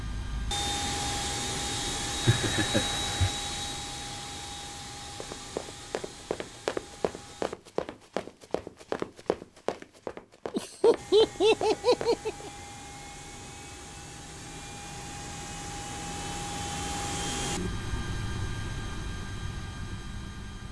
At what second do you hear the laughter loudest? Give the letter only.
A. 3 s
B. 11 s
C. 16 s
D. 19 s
B.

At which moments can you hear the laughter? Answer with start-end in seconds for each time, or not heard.
2.2-3.3, 10.5-12.5.